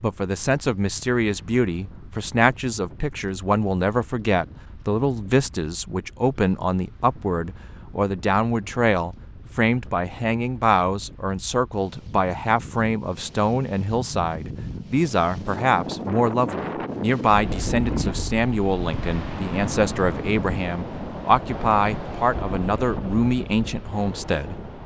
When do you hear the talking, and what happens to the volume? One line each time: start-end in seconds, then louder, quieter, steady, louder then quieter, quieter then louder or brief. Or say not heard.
0.0-24.6 steady.